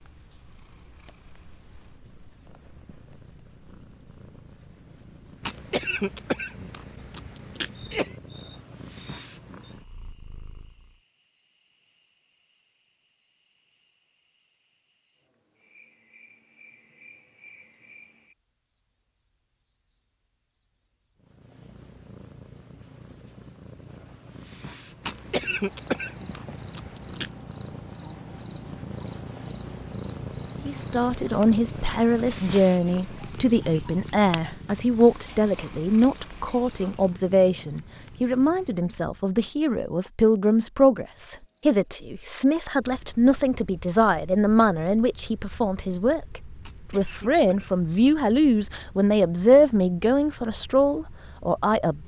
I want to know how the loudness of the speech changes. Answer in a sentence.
The loudness of the speech stays about the same.